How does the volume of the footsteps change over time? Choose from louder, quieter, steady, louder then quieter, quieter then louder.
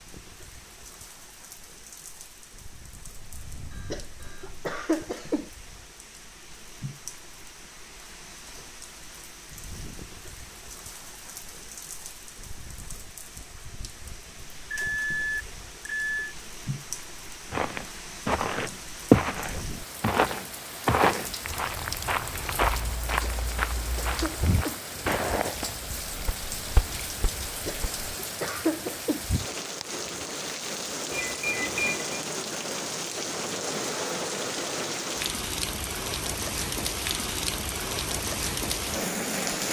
quieter.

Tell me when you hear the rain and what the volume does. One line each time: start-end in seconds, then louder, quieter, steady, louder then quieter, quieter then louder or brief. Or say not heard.
0.0-39.6 louder.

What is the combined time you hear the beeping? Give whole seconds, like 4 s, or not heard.
4 s.